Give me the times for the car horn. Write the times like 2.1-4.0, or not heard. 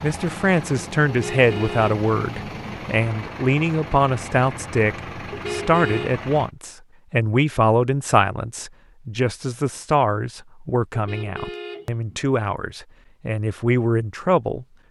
1.1-2.8, 5.3-6.1, 10.9-12.2.